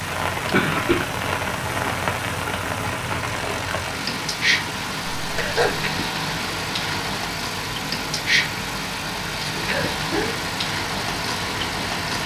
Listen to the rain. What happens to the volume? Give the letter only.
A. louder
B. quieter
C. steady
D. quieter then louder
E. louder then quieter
C.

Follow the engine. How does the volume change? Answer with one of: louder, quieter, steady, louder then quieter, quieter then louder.
steady.